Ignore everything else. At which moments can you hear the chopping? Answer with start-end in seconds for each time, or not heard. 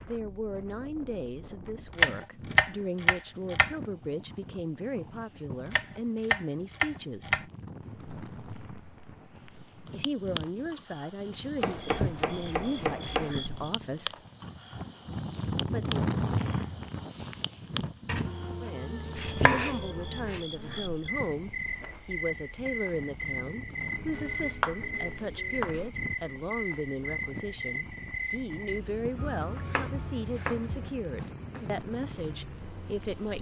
1.9-3.8, 5.7-7.5, 11.6-13.3, 18.1-20.4, 23.9-25.9, 29.1-30.9.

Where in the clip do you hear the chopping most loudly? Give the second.
2 s.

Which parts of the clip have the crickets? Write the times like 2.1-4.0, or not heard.
7.8-33.3.